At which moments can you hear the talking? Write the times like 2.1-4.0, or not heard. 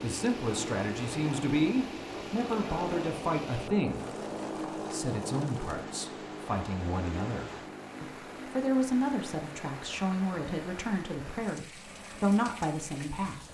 0.0-4.1, 4.9-13.4.